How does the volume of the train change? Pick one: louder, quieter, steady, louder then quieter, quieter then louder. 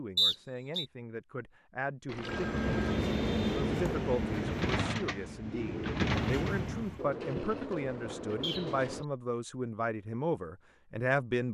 quieter then louder.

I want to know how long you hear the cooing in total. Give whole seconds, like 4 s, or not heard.
7 s.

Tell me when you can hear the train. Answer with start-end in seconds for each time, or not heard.
2.1-7.0.